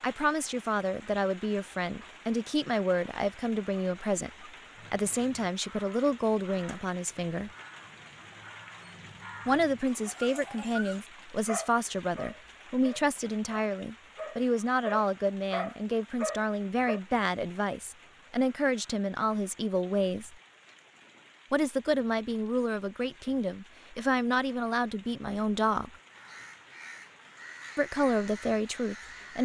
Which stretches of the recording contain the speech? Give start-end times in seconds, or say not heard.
0.0-7.5, 9.4-20.4, 21.5-25.9, 27.8-29.3.